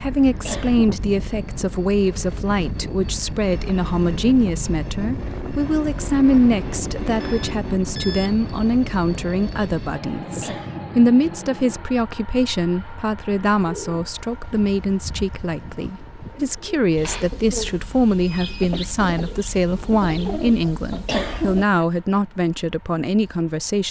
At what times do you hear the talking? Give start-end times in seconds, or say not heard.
0.0-23.8.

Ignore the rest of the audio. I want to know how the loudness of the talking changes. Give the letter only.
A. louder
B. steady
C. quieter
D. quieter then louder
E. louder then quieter
B.